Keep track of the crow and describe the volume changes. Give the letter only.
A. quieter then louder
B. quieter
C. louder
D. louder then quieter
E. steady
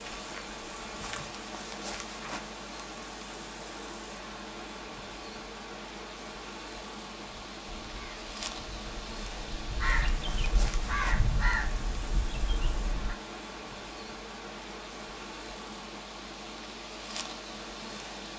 D.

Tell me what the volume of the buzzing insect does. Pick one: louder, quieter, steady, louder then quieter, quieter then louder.
steady.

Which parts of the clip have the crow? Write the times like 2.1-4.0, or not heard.
7.2-13.2.